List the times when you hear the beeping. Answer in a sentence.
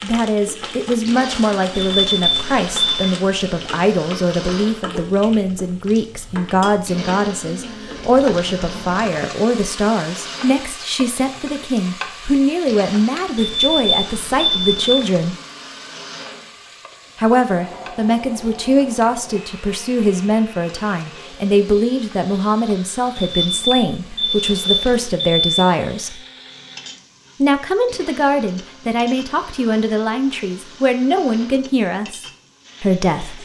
The beeping can be heard from 1.8 to 3.1 s, from 13.3 to 14.9 s and from 23.1 to 25.4 s.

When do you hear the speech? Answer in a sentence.
The speech can be heard from 0.0 to 15.3 s, from 17.1 to 26.2 s and from 27.4 to 33.4 s.